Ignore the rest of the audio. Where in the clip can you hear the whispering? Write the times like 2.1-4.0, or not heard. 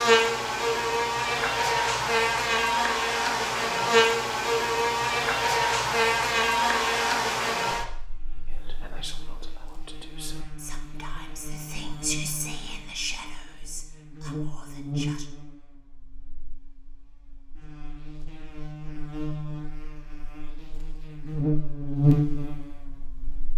8.4-15.3.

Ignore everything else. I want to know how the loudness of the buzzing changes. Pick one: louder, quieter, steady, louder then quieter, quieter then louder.
quieter then louder.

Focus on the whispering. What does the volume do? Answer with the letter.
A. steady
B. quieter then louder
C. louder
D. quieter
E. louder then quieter
E.